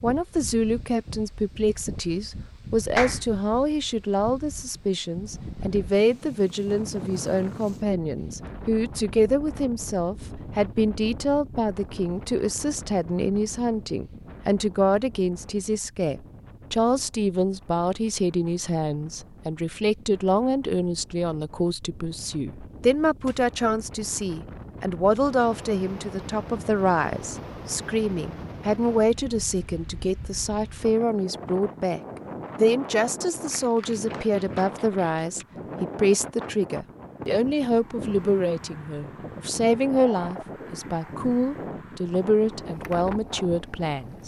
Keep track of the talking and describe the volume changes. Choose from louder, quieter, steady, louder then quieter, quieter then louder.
steady.